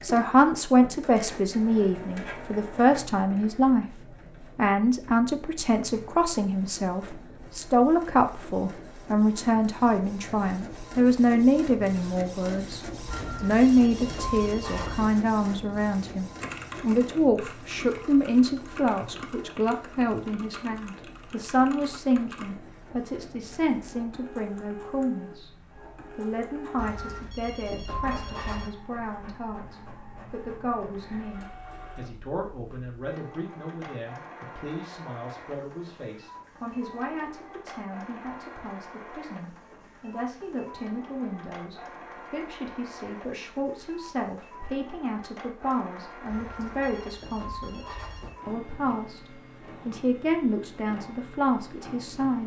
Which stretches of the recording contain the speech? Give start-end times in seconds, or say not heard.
0.0-3.9, 4.5-12.8, 13.4-52.4.